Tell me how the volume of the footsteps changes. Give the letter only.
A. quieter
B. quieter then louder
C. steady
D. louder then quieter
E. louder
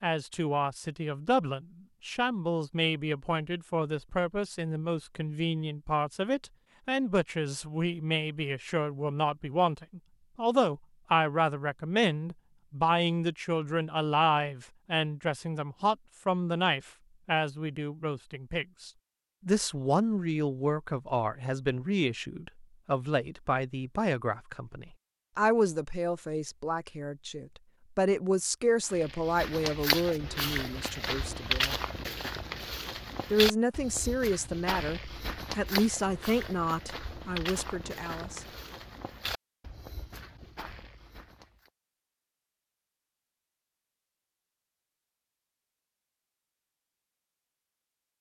A.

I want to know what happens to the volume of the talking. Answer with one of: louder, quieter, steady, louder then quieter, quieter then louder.
steady.